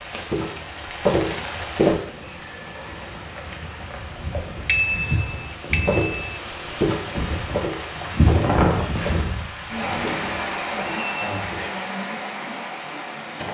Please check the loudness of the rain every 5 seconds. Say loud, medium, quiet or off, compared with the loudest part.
medium, loud, loud.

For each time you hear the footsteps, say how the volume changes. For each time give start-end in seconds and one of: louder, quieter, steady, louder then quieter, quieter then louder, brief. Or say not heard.
0.1-2.0 brief
5.8-11.7 quieter.